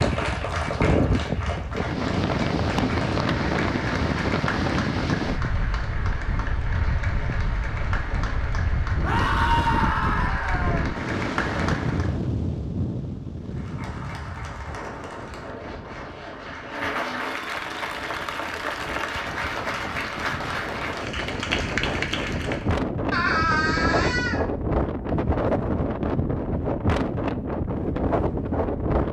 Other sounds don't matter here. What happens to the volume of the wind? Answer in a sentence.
The volume of the wind goes down, then up.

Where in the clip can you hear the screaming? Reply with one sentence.
You can hear the screaming from 9.0 to 10.8 s and from 23.1 to 24.4 s.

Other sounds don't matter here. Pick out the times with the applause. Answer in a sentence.
The applause can be heard from 0.0 to 12.2 s and from 13.4 to 22.8 s.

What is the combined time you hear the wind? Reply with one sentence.
You can hear the wind for 29 seconds altogether.